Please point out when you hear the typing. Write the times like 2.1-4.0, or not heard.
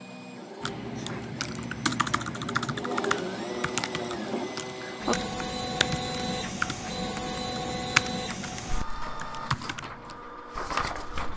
0.6-10.2.